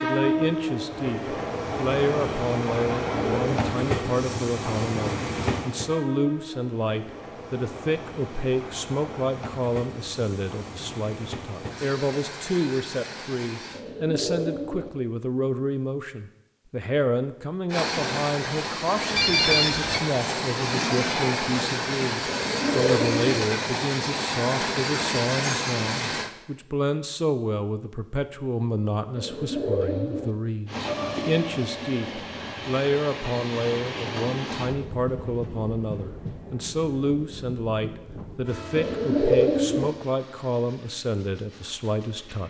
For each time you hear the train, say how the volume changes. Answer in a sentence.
You can hear the train from 0.0 to 13.8 s, getting quieter; from 17.7 to 26.3 s, at a steady volume; and from 30.6 to 42.4 s, getting quieter.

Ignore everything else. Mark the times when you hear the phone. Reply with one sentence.
You can hear the phone from 19.1 to 20.0 s.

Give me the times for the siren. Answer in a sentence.
You can't hear the siren here.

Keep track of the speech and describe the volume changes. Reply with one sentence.
The volume of the speech stays about the same.